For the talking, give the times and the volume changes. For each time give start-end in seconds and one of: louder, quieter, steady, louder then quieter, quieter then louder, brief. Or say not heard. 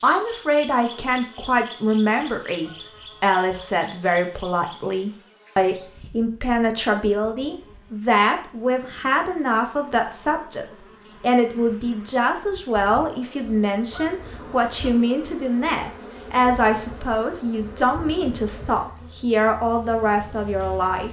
0.0-21.0 steady.